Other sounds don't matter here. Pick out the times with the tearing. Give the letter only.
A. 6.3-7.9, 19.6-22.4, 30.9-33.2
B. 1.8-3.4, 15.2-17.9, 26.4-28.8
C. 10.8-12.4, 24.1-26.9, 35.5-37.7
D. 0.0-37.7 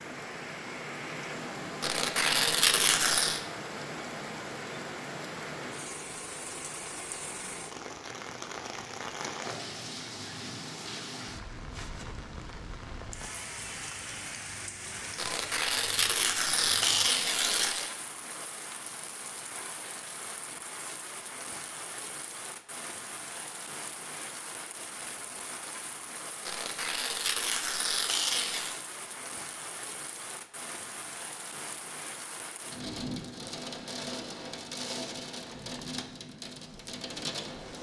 B.